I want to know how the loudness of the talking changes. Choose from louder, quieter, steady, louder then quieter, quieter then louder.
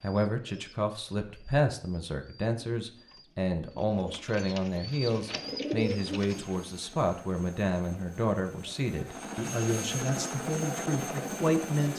steady.